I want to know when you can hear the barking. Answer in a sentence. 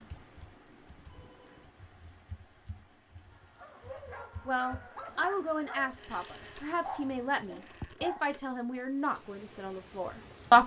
You can hear the barking from 3.3 to 8.8 s.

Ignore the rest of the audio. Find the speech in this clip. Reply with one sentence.
You can hear the speech from 4.5 to 10.6 s.